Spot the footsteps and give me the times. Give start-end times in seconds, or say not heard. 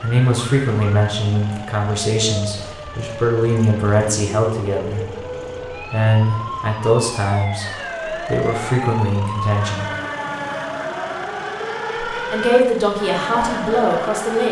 not heard.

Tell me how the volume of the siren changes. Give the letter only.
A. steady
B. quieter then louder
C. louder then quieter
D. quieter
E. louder
E.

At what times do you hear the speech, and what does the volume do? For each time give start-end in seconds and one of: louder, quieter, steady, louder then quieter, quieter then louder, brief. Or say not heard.
0.0-9.9 steady
12.1-14.4 brief.